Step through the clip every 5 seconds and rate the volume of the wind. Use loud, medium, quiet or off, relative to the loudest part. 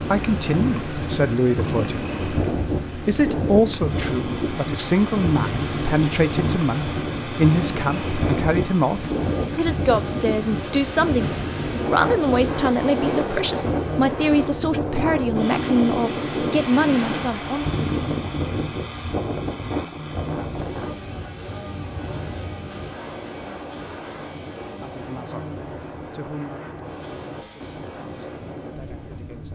loud, loud, loud, loud, medium, medium.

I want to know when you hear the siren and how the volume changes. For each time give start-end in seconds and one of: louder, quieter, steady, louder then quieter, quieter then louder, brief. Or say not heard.
not heard.